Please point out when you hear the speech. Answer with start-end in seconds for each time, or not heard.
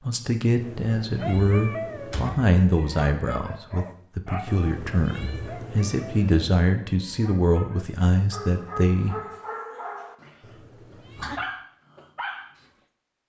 0.0-9.2.